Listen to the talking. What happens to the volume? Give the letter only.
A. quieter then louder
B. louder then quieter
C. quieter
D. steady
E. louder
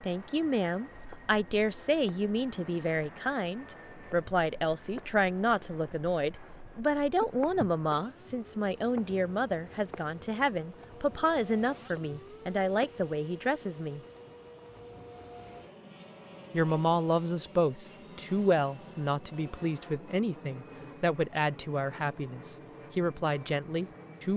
D.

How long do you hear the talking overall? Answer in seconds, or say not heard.
22 s.